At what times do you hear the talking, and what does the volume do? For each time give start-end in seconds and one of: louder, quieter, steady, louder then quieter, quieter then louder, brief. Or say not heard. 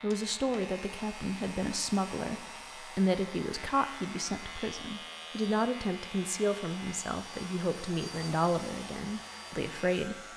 0.0-10.2 steady.